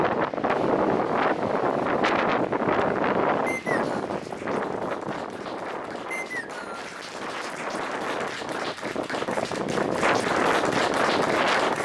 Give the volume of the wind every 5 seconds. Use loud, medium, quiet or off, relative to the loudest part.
loud, medium, loud.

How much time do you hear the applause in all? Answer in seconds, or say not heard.
12 s.